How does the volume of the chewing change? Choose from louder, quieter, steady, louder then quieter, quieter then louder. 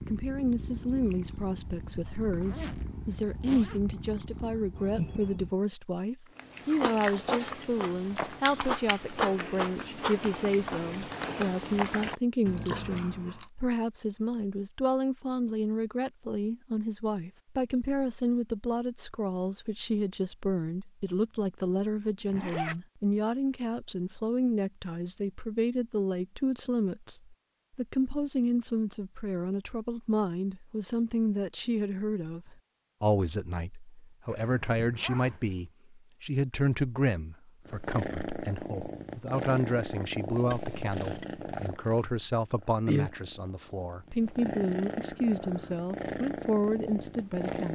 steady.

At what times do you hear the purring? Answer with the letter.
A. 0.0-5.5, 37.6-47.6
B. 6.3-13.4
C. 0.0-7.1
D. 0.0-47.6
A.